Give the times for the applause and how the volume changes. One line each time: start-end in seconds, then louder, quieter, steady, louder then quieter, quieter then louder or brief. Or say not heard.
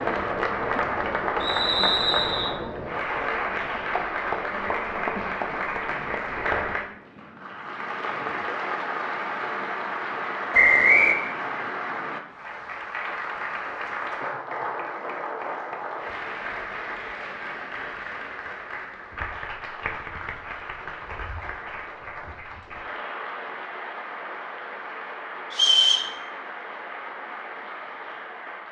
0.0-28.6 quieter.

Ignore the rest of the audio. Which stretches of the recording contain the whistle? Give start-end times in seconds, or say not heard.
1.4-2.5, 10.5-11.2, 25.5-26.1.